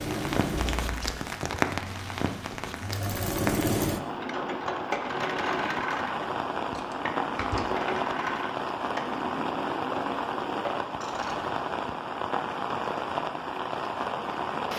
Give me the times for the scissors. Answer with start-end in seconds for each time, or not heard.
0.5-1.2, 6.7-7.7, 11.0-11.4.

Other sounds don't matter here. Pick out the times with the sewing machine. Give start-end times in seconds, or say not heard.
0.0-10.8.